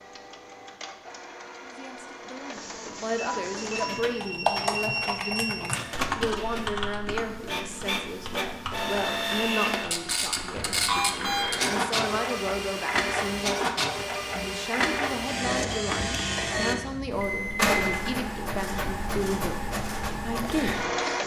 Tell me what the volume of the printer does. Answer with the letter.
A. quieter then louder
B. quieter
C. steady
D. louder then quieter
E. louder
E.